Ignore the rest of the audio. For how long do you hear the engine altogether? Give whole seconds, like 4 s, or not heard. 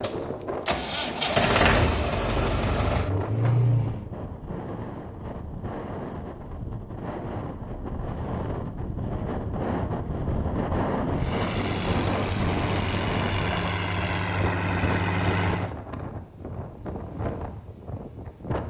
9 s.